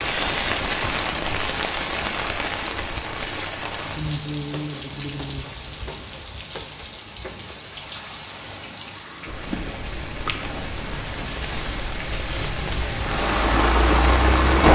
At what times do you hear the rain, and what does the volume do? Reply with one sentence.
You can hear the rain from 0.0 to 14.6 s, getting quieter then louder.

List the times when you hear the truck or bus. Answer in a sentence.
The truck or bus can be heard from 12.9 to 14.6 s.